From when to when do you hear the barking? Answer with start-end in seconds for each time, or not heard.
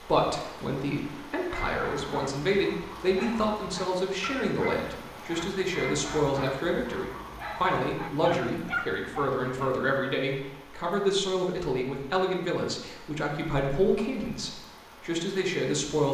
1.5-9.8.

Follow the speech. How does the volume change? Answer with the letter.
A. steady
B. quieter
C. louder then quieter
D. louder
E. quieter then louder
A.